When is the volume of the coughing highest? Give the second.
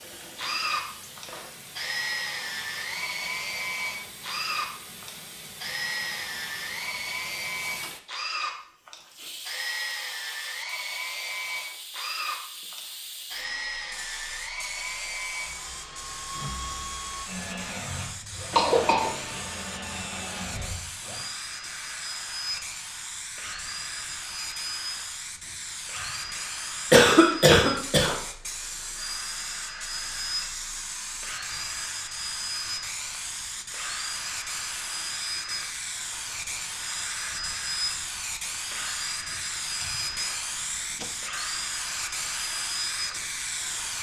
27 s.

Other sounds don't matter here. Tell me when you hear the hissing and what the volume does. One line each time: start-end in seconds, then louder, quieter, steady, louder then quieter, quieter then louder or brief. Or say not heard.
0.0-43.9 louder.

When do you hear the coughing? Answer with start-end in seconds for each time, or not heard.
18.5-19.1, 26.9-28.1.